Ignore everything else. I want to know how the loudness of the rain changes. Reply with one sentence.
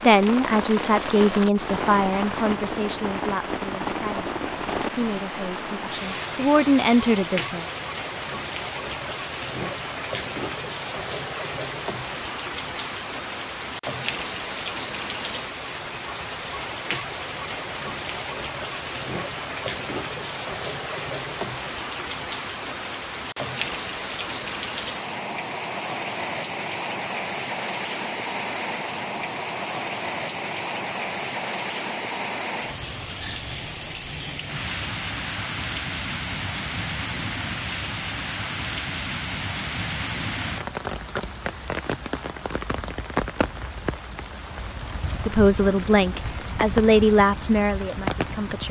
The volume of the rain stays about the same.